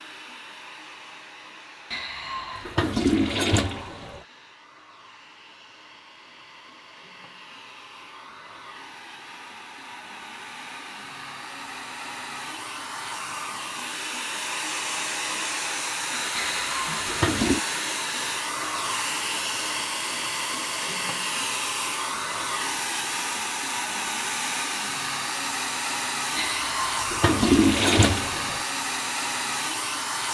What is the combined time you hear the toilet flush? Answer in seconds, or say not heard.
6 s.